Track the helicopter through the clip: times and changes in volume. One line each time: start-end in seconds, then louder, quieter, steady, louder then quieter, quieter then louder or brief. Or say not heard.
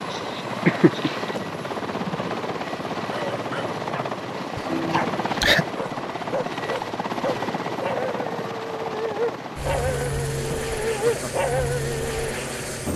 0.0-12.9 steady.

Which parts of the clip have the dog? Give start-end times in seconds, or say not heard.
3.0-4.1, 4.9-12.2.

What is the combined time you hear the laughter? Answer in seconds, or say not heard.
3 s.